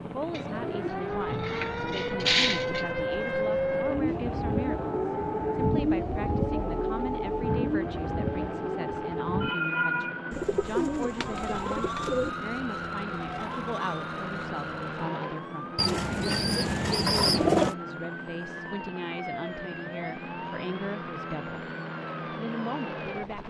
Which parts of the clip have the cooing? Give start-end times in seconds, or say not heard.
0.3-2.9, 10.3-12.3, 15.8-17.8.